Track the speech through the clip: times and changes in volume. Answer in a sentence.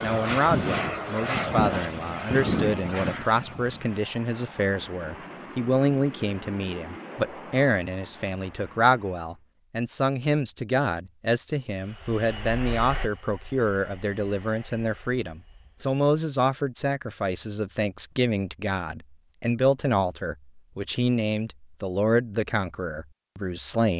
You can hear the speech from 0.0 to 23.9 s, at a steady volume.